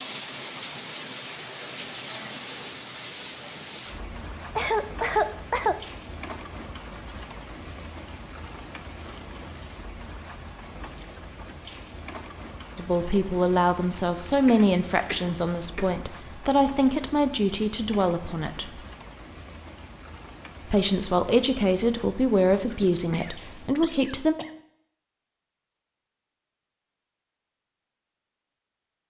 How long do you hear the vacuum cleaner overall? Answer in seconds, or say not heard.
not heard.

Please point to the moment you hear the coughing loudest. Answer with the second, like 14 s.
5 s.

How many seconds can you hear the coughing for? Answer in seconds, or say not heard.
5 s.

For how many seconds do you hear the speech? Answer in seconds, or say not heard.
10 s.